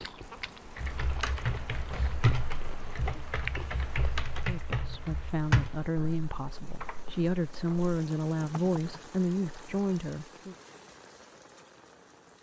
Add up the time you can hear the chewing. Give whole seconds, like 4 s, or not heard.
4 s.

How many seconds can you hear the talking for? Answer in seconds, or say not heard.
6 s.